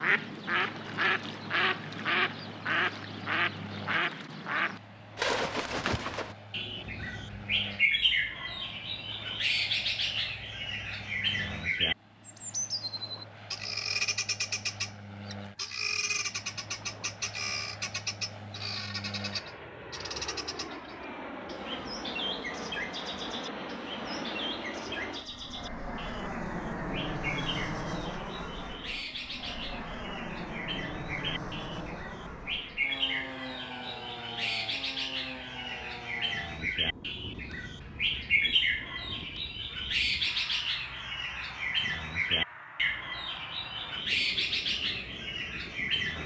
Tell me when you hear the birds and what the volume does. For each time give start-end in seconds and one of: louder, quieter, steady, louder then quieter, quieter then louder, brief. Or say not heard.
0.0-46.2 quieter then louder.